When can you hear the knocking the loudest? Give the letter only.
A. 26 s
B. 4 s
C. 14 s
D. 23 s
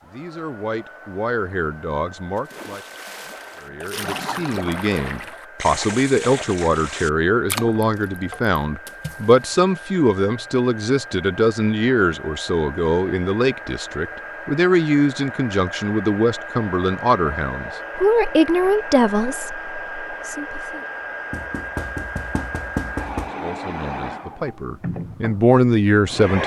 D.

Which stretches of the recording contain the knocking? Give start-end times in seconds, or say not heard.
21.3-23.3.